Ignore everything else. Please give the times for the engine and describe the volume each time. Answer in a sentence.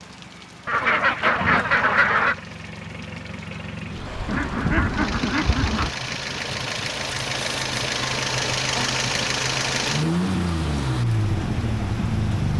You can hear the engine from 0.0 to 12.5 s, getting louder.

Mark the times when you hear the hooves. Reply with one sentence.
The hooves can't be heard in this clip.